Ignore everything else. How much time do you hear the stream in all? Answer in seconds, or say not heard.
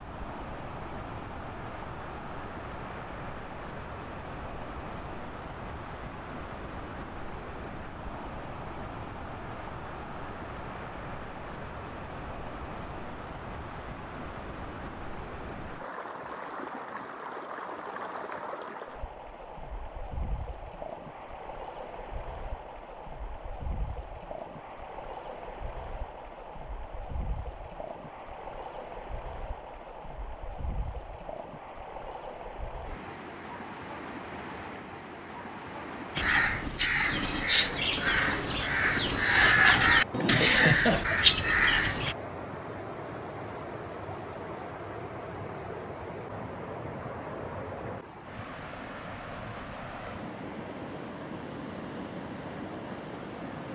54 s.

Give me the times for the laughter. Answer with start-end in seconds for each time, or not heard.
40.1-41.2.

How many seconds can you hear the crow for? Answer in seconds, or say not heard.
6 s.